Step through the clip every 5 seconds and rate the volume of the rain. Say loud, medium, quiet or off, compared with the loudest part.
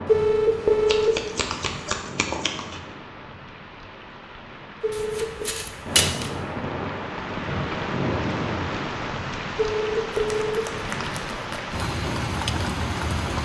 medium, loud, loud.